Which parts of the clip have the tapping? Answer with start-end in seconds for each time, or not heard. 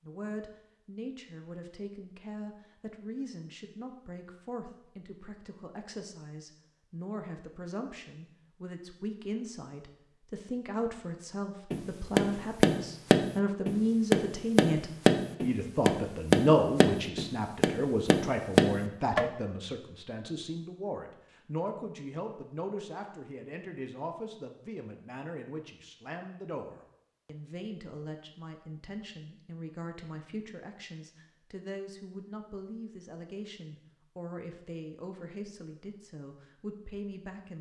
11.7-19.2.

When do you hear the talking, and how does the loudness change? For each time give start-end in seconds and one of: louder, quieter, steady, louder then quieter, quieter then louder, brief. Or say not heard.
0.0-37.5 louder then quieter.